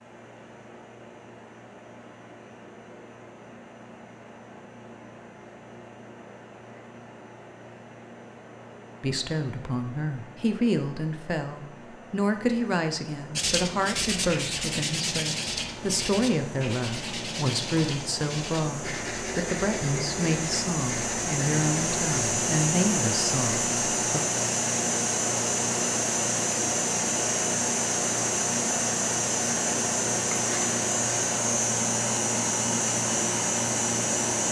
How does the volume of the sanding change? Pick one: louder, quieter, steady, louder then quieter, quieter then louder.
quieter.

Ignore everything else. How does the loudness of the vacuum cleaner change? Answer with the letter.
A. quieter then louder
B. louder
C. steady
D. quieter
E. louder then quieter
B.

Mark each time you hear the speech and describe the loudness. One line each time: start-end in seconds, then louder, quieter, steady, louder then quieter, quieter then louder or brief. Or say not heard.
9.0-24.2 steady.